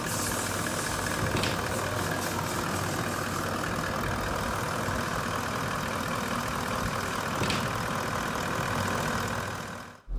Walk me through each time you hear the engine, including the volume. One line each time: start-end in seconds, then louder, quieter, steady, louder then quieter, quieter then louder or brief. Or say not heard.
0.0-10.1 steady.